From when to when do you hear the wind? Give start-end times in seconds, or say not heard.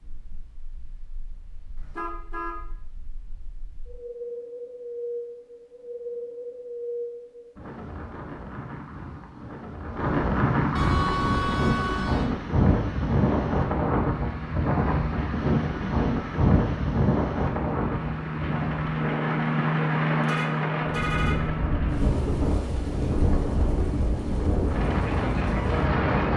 0.0-26.3.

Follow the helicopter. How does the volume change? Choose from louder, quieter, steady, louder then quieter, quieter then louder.
louder then quieter.